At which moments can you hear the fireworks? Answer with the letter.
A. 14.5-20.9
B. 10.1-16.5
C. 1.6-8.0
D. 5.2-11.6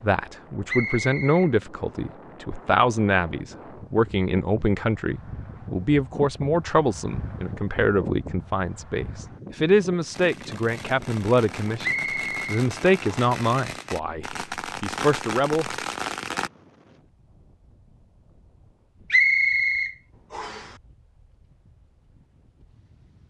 B.